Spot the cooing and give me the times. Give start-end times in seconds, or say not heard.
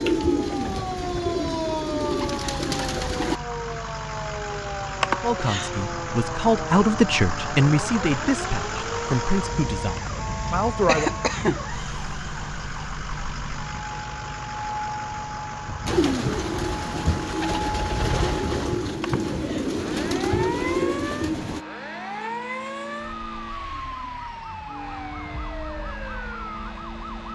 0.0-3.4, 15.8-21.6.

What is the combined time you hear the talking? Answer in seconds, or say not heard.
6 s.